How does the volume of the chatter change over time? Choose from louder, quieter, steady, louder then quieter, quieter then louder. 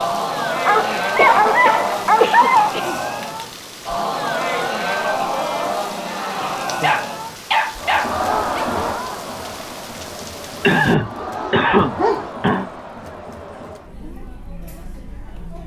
quieter.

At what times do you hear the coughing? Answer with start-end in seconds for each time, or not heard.
1.1-3.0, 10.6-12.7.